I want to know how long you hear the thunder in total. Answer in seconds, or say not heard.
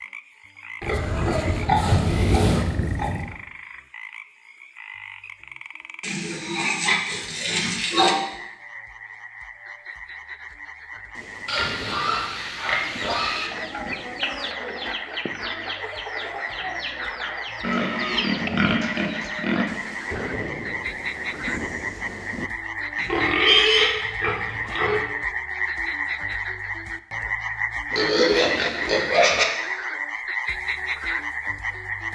6 s.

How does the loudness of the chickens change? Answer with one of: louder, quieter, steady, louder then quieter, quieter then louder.
steady.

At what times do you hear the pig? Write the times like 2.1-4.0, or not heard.
0.8-3.4, 6.0-8.2, 11.4-13.5, 17.6-19.6, 22.9-25.0, 27.9-29.4.